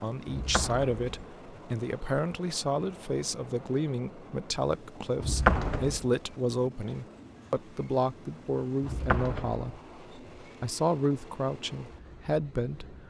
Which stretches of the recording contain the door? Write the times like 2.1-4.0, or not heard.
0.2-1.2, 5.2-6.0, 8.8-9.8.